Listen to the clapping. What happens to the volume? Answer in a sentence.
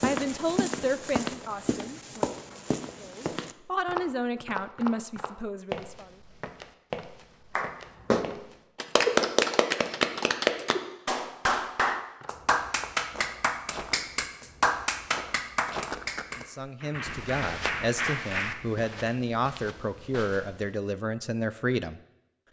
The volume of the clapping goes down.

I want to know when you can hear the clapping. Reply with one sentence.
You can hear the clapping from 7.5 to 19.1 s.